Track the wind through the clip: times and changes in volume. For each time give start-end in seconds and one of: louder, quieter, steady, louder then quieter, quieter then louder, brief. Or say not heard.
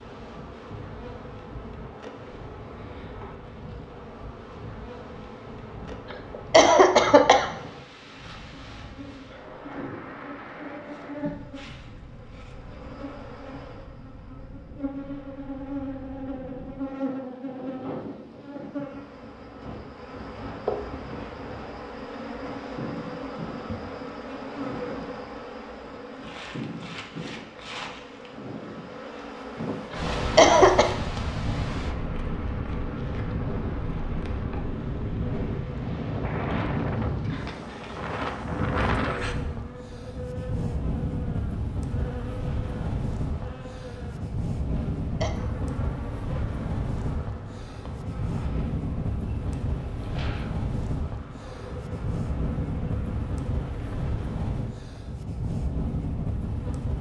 0.0-56.9 louder.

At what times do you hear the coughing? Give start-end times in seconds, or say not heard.
6.5-7.5, 29.9-30.9, 44.8-45.4.